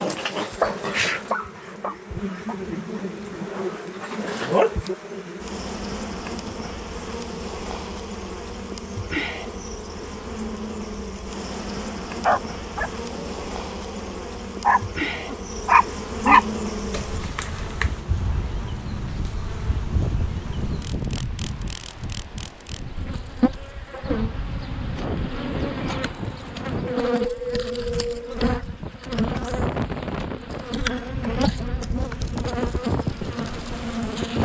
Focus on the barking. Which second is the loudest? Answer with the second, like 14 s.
16 s.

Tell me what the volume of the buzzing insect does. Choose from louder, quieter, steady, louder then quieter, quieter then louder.
steady.